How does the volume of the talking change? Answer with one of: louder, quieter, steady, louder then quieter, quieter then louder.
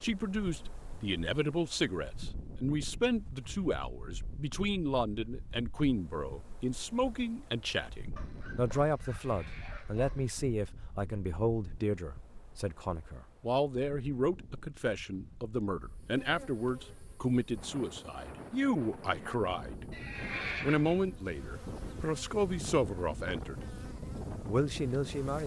steady.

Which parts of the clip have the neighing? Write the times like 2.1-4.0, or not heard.
9.1-10.1, 19.9-21.1.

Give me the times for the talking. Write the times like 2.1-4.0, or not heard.
0.0-20.0, 20.6-25.4.